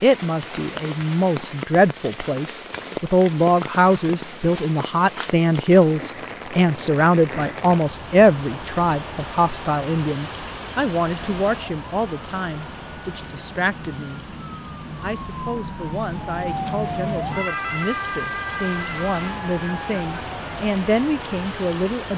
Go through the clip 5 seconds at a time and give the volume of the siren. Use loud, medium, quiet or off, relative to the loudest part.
off, off, medium, loud, medium.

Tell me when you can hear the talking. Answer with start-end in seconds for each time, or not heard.
0.0-14.3, 15.0-22.1.